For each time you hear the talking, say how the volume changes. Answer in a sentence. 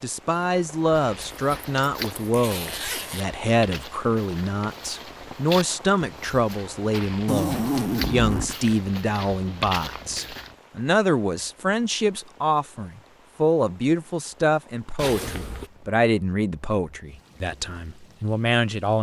The talking can be heard from 0.0 to 18.9 s, at a steady volume.